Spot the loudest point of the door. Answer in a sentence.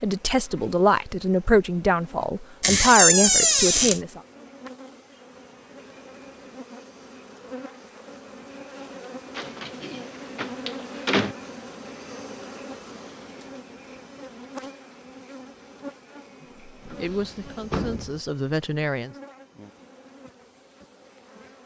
The volume of the door peaks at 3 seconds.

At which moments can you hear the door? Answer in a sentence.
You can hear the door from 2.6 to 4.0 s, from 9.3 to 11.3 s and from 16.9 to 18.2 s.